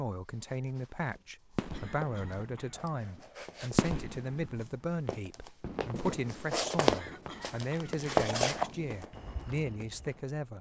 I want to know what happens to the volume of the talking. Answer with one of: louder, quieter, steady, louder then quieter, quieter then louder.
steady.